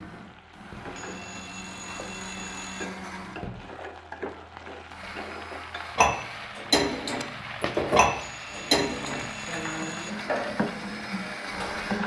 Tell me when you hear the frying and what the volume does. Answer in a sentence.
You can hear the frying from 0.0 to 12.0 s, getting louder.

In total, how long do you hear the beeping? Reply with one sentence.
The beeping can be heard for 4 seconds in total.